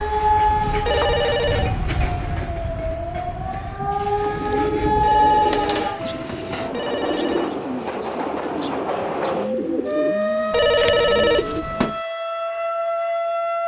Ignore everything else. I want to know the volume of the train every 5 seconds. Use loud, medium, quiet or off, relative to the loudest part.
loud, loud, off.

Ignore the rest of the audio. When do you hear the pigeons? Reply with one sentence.
The pigeons can be heard from 4.2 to 11.7 s.